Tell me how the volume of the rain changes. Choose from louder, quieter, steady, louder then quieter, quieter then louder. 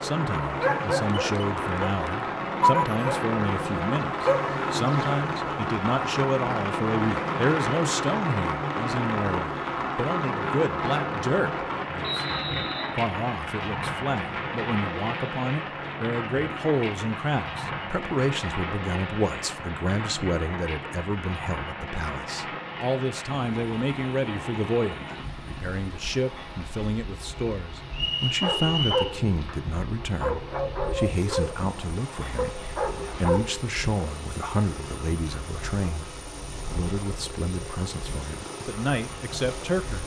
quieter.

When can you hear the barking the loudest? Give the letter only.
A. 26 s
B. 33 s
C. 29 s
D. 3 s
D.